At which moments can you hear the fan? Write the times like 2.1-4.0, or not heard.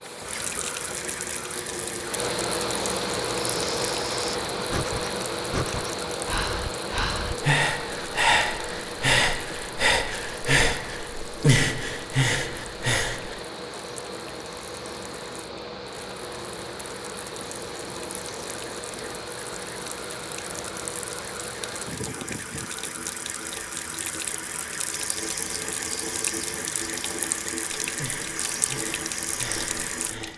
0.0-22.7.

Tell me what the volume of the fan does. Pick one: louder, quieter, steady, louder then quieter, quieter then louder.
quieter.